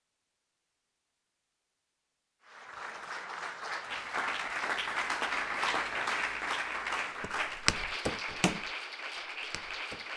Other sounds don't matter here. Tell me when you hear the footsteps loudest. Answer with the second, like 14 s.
8 s.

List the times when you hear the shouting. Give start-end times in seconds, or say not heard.
not heard.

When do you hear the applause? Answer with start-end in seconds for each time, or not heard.
2.5-10.1.